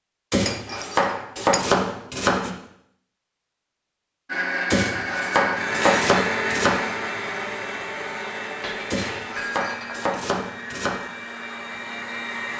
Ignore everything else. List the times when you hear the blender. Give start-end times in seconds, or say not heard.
4.2-12.5.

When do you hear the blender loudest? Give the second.
6 s.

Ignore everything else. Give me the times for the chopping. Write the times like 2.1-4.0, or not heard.
0.3-2.5, 4.7-6.8, 8.9-11.0.